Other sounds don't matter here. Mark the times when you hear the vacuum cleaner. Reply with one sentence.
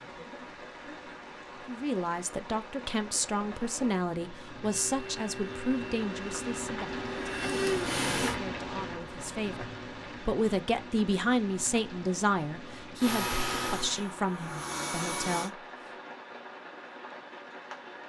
You can hear the vacuum cleaner from 4.7 to 8.3 s and from 12.9 to 15.5 s.